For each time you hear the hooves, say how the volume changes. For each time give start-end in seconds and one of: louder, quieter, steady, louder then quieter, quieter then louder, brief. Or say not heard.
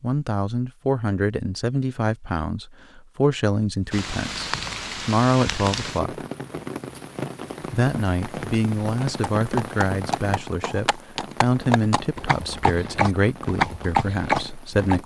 9.2-15.0 louder.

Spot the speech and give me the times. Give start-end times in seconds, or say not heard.
0.0-6.2, 7.7-15.0.